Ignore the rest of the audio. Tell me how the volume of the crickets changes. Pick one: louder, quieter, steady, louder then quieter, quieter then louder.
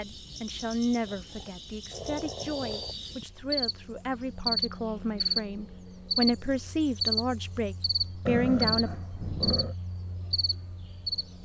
louder then quieter.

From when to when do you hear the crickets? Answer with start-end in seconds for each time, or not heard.
0.0-11.4.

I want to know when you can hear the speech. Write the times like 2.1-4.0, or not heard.
0.0-8.9.